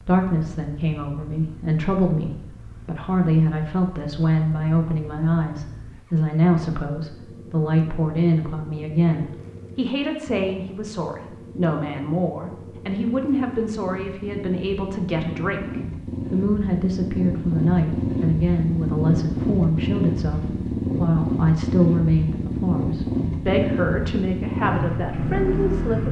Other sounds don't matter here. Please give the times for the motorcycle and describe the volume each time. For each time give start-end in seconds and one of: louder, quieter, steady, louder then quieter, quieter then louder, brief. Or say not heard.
0.0-26.0 louder.